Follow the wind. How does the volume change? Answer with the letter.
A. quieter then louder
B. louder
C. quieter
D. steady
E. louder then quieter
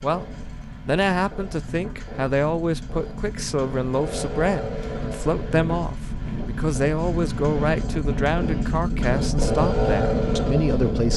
B.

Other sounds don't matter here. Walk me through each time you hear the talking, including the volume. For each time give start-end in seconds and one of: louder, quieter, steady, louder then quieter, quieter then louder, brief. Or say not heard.
0.0-11.1 steady.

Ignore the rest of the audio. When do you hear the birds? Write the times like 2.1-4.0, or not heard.
not heard.